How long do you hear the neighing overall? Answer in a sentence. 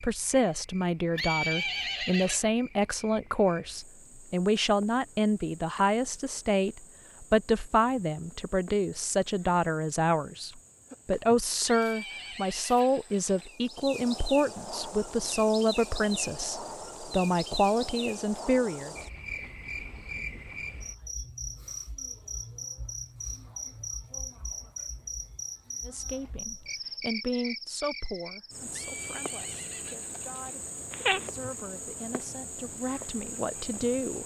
You can hear the neighing for 5 seconds altogether.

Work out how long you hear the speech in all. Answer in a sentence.
The speech can be heard for 27 seconds in total.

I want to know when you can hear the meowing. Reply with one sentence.
The meowing can be heard from 30.9 to 31.3 s.